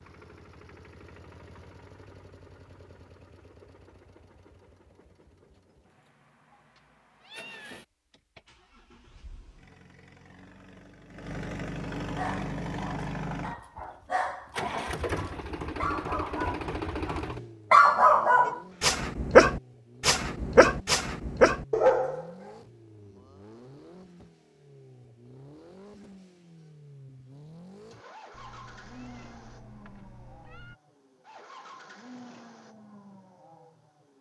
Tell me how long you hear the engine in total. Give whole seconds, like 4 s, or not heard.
34 s.